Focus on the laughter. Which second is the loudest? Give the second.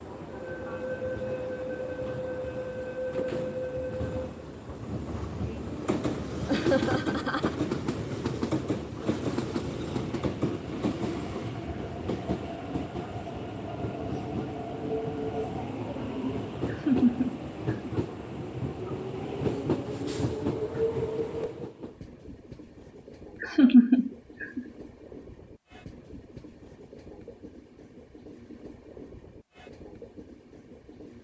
24 s.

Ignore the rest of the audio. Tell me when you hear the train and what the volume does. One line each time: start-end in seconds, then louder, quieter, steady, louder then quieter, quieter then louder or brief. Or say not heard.
0.0-31.1 quieter.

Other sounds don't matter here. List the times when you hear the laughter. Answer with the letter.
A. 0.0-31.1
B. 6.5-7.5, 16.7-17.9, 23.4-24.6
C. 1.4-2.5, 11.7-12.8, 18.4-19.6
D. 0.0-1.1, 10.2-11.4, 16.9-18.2
B.